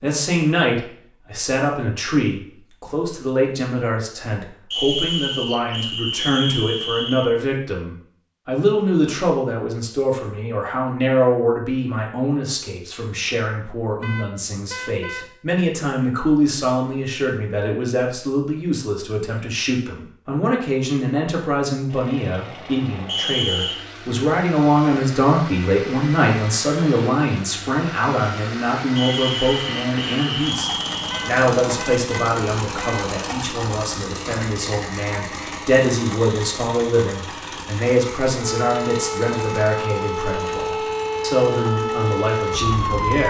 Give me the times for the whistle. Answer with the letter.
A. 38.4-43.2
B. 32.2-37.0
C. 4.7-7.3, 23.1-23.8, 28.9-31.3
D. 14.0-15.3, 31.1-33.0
C.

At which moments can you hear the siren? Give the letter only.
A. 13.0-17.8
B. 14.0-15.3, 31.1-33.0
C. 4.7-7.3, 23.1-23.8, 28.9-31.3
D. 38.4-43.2
D.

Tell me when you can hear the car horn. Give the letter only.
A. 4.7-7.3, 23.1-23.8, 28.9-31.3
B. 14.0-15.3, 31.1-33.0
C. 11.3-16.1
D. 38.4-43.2
B.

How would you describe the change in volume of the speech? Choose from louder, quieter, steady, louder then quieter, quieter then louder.
steady.